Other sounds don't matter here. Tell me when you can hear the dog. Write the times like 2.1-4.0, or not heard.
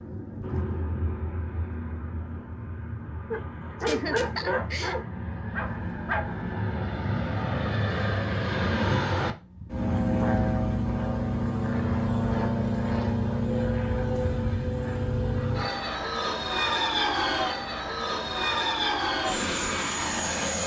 3.3-6.5.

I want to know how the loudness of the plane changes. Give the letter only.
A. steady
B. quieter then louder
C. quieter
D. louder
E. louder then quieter
D.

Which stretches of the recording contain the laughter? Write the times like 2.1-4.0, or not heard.
3.8-5.0.